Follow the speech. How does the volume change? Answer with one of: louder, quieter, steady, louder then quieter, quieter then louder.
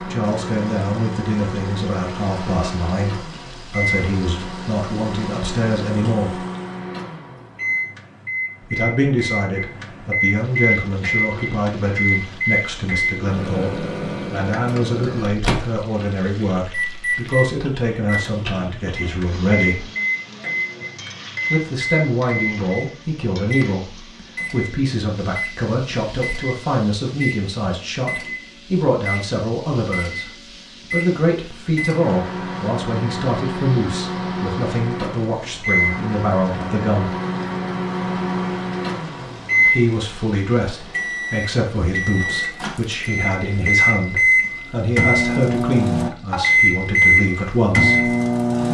steady.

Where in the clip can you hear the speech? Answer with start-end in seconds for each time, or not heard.
0.0-6.4, 8.6-19.9, 21.5-37.1, 39.6-48.1.